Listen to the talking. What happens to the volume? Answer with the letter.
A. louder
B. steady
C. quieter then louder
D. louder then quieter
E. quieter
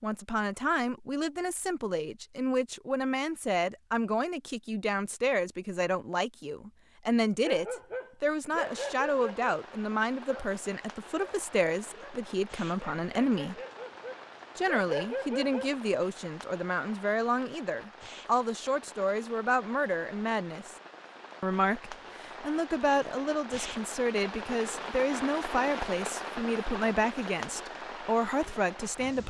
B.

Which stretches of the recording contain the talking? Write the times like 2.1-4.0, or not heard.
0.0-13.6, 14.6-20.8, 21.4-29.2.